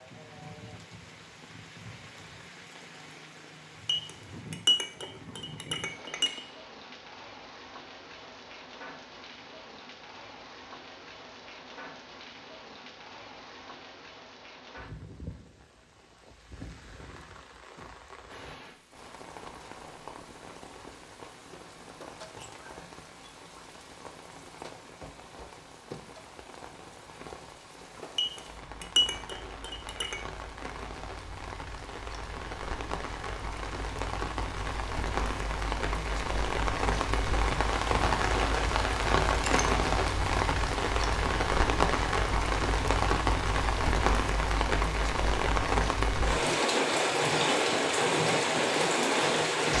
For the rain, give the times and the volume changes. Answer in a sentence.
The rain can be heard from 0.0 to 49.7 s, getting louder.